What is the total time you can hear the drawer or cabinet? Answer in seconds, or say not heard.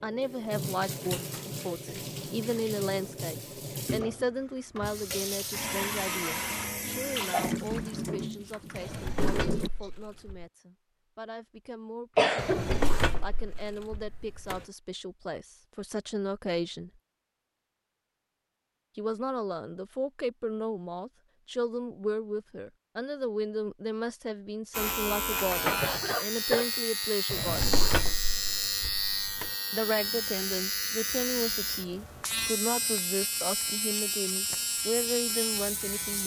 6 s.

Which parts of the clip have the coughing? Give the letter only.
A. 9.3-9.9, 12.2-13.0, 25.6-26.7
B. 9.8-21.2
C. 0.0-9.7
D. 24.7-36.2
A.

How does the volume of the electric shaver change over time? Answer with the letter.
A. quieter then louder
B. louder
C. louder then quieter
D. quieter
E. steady
E.